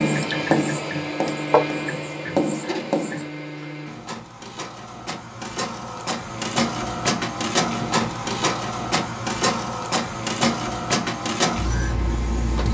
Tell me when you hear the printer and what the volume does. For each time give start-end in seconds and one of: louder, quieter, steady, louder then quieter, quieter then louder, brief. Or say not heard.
0.0-12.6 quieter then louder.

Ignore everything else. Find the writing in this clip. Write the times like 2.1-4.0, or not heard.
0.0-3.2.